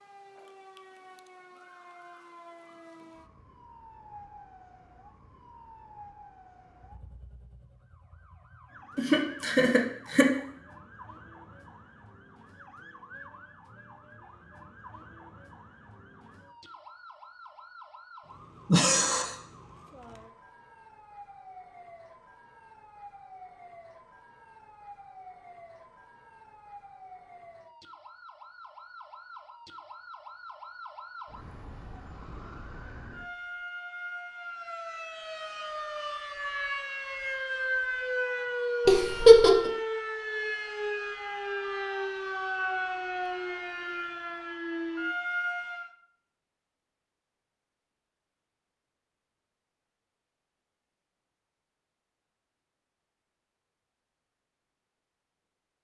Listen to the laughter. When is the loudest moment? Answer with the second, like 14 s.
39 s.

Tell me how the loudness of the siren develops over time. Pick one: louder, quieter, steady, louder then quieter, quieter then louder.
louder.